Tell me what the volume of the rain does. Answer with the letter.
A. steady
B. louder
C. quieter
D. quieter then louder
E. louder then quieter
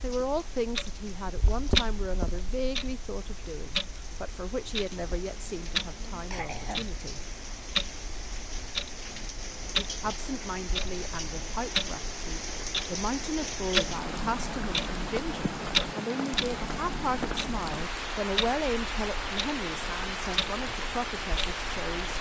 B.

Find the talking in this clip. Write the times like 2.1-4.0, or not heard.
0.0-7.2, 9.8-22.1.